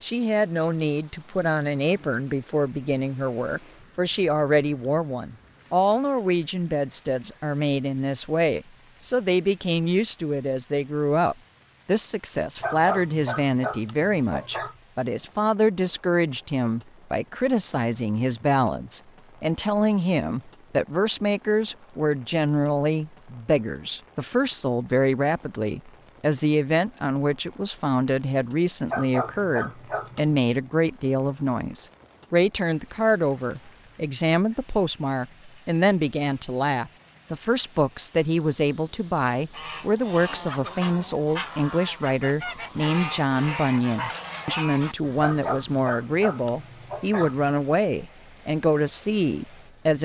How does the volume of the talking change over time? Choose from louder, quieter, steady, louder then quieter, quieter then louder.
steady.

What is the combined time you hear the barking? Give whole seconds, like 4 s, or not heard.
6 s.